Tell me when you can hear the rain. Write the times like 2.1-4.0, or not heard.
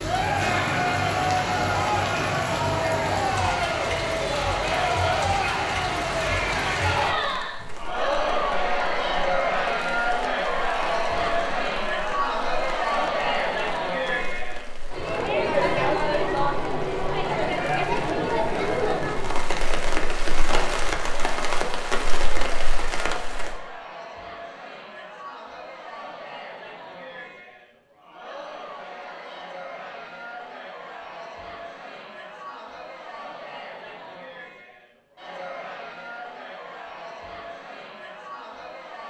0.0-23.6.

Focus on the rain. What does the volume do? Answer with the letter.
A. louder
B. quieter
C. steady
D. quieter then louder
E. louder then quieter
D.